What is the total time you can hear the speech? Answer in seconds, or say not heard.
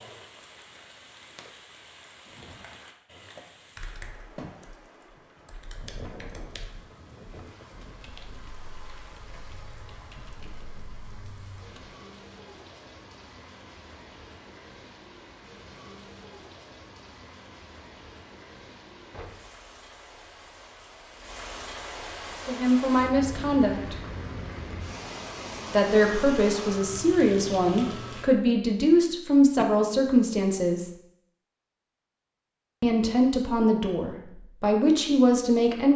10 s.